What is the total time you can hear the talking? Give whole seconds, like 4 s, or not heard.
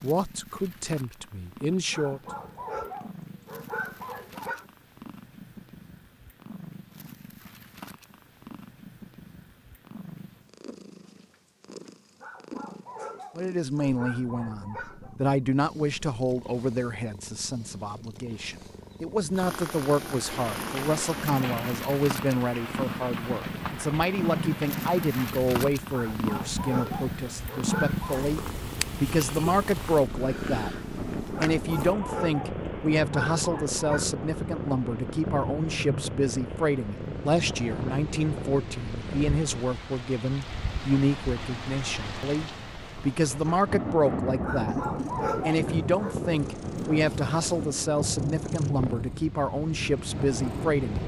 39 s.